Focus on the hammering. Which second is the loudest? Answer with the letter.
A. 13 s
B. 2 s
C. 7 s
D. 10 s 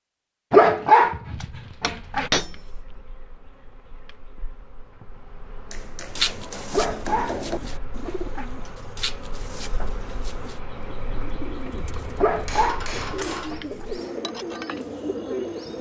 B.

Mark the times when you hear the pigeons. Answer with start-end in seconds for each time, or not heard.
6.2-15.7.